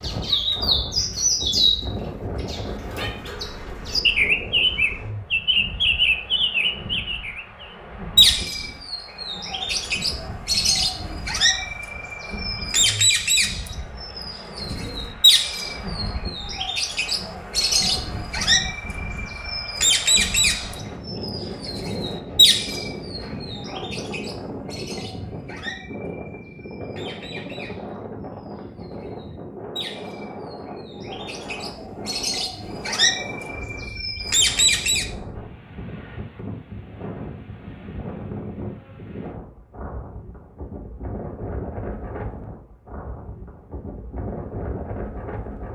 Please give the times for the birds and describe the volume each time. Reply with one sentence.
The birds can be heard from 0.0 to 35.0 s, getting quieter.